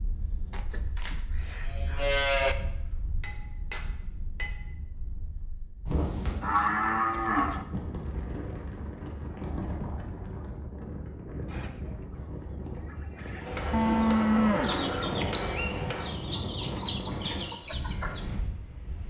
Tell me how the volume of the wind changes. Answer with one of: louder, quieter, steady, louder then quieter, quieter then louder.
louder.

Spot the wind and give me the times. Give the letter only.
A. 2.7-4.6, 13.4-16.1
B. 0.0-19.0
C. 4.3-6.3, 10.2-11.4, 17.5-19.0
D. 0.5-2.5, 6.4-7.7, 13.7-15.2
B.